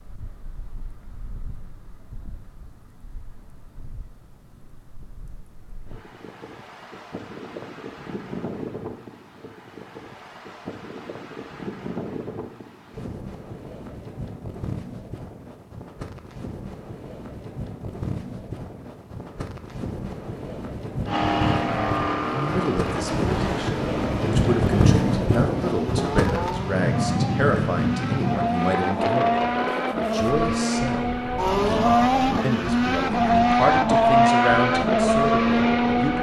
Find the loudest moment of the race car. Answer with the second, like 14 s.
34 s.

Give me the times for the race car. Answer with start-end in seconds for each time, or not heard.
21.1-36.1.